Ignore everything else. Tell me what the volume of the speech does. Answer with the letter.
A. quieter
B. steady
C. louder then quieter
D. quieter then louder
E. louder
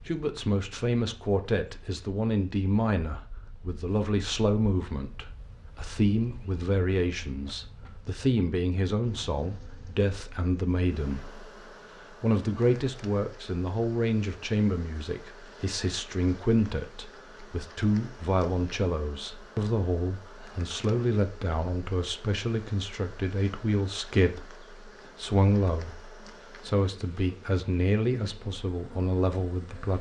B.